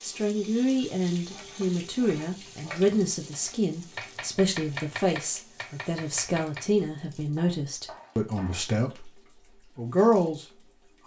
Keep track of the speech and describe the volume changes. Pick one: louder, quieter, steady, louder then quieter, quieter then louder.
steady.